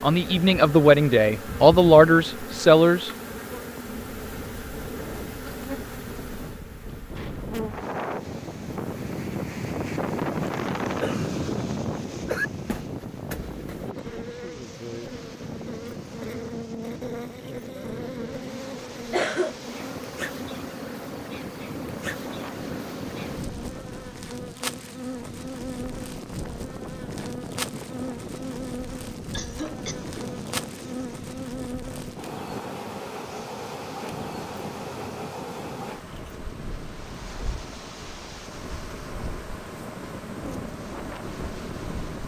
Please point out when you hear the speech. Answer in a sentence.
You can hear the speech from 0.0 to 3.1 s.